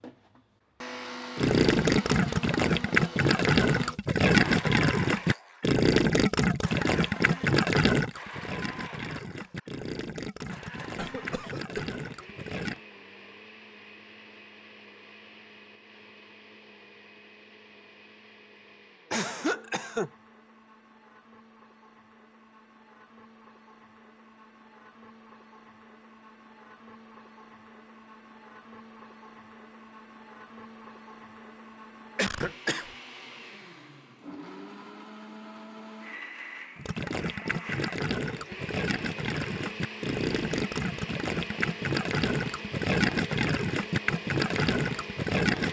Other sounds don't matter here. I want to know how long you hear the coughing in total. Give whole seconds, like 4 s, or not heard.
3 s.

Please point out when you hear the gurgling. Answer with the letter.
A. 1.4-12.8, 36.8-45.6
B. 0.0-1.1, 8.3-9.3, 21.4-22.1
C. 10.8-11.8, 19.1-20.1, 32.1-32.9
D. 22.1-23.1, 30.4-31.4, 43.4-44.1
A.